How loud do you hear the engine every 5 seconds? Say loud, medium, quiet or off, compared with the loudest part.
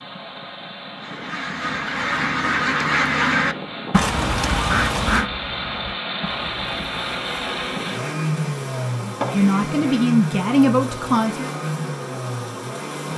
medium, loud, loud.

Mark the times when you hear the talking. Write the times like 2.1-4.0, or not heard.
9.0-11.5.